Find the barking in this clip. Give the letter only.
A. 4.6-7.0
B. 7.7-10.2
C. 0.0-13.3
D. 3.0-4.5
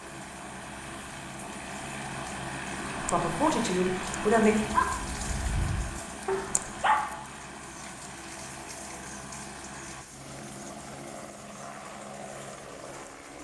A.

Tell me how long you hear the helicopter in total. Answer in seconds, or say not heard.
13 s.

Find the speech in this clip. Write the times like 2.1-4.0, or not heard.
3.0-4.5.